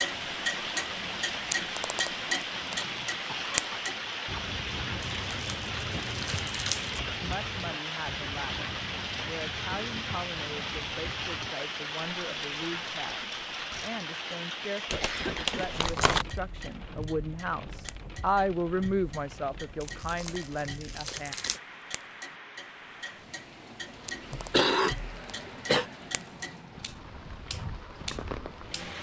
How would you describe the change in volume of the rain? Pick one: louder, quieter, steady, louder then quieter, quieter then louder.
quieter.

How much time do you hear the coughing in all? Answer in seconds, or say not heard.
4 s.